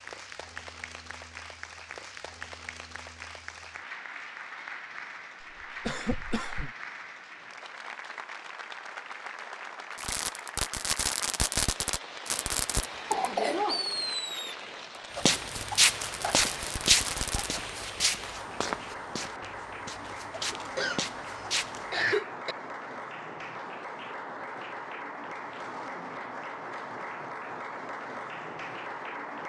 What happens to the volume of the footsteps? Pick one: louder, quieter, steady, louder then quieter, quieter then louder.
quieter then louder.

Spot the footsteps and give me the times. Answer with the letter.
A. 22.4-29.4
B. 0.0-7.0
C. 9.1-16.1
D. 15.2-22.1
D.